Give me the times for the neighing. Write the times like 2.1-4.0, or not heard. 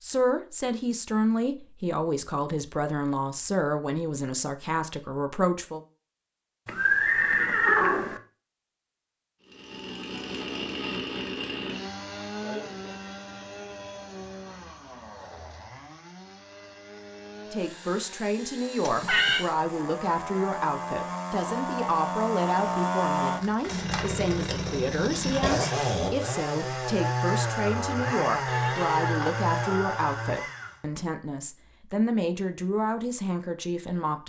6.7-8.2, 18.9-19.4, 28.4-29.4.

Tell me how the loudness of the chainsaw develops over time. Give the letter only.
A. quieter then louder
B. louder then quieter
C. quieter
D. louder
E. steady
A.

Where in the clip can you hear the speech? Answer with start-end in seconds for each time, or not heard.
0.0-5.8, 17.5-34.2.